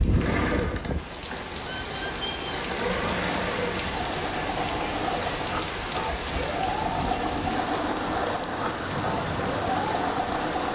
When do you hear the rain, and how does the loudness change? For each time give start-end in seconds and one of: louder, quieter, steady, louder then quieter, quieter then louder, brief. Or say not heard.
0.0-10.6 steady.